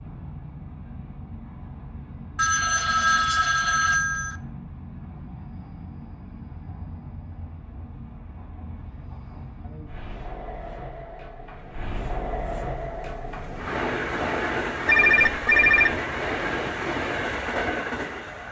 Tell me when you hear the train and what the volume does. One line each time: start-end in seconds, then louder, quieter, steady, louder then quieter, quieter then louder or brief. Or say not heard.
0.0-18.4 louder.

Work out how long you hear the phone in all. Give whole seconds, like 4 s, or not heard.
3 s.